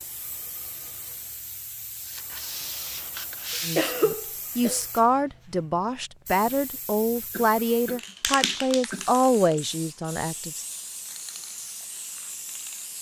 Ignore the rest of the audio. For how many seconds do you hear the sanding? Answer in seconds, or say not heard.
2 s.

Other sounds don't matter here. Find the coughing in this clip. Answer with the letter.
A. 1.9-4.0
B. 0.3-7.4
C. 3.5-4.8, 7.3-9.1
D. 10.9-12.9
C.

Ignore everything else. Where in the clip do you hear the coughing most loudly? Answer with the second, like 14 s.
4 s.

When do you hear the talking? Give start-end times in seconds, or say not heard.
3.6-10.7.